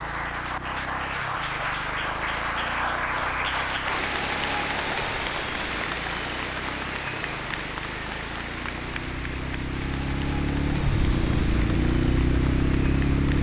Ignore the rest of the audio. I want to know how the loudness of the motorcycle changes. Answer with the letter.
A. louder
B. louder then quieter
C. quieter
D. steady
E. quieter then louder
A.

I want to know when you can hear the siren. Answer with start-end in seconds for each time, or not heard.
not heard.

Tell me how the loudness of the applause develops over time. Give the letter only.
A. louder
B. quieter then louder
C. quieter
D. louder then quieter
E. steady
C.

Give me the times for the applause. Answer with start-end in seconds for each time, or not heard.
0.0-13.3.